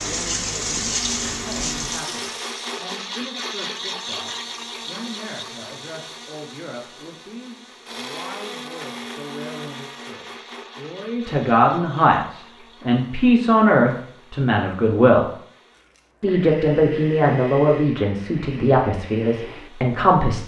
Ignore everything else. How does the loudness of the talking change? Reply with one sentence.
The volume of the talking goes up.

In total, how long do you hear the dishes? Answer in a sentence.
The dishes can't be heard in this clip.